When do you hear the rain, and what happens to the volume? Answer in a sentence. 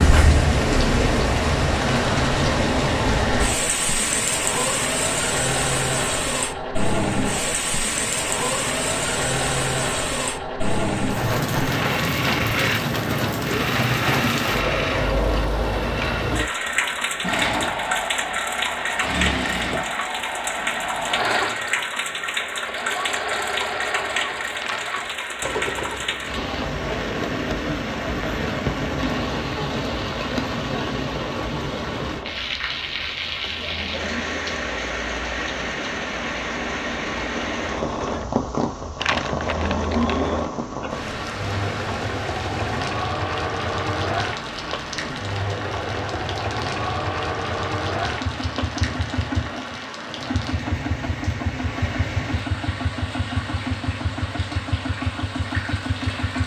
The rain can be heard from 0.0 to 56.4 s, getting quieter.